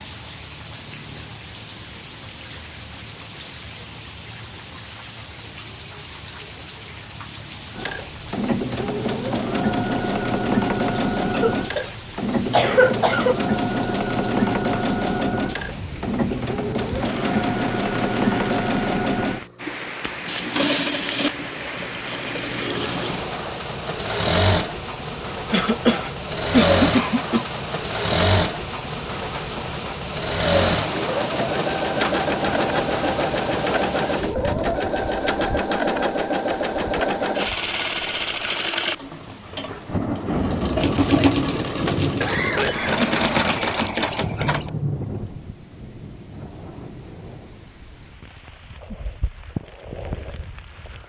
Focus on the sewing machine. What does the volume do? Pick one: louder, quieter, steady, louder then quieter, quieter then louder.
steady.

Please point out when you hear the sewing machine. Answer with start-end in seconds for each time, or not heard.
7.8-44.8.